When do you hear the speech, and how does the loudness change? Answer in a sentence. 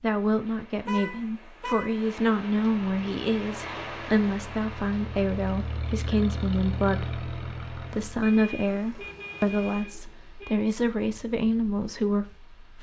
You can hear the speech from 0.0 to 12.7 s, at a steady volume.